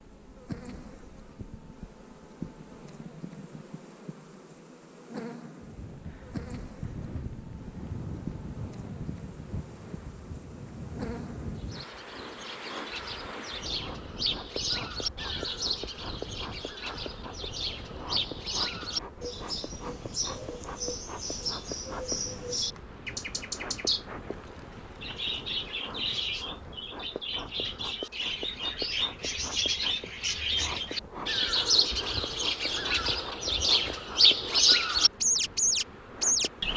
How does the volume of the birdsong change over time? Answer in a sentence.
The loudness of the birdsong goes up.